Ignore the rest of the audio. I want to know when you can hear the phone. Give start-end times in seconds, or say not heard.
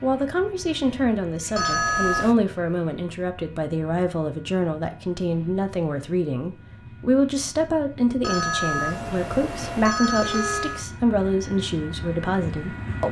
1.6-2.4, 8.2-10.8.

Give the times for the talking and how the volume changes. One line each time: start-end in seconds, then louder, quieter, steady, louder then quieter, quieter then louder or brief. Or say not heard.
0.0-13.0 steady.